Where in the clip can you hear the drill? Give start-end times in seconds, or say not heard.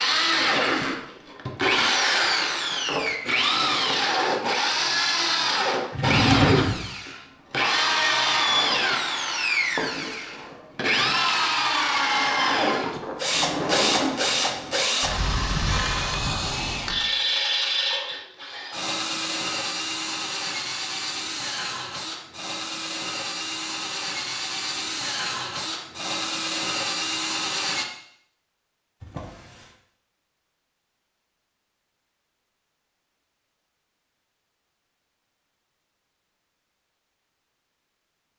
0.0-27.9.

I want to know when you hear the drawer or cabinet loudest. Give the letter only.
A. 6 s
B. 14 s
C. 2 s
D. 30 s
A.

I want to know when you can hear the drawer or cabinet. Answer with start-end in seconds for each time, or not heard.
5.9-6.8, 13.3-14.8, 29.0-29.7.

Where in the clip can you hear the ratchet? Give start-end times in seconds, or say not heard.
not heard.